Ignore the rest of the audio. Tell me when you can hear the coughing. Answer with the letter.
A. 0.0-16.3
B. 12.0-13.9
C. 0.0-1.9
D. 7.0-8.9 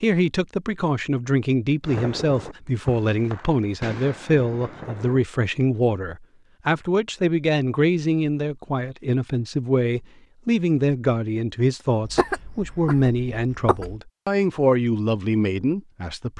B.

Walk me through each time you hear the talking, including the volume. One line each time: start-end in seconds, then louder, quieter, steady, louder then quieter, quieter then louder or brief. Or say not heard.
0.0-16.3 steady.